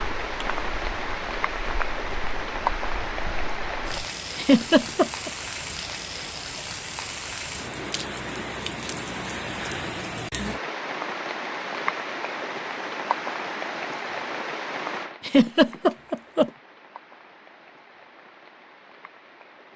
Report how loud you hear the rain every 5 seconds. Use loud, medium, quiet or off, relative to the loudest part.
loud, loud, loud, quiet.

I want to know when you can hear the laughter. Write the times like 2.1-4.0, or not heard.
4.3-5.3, 15.2-16.5.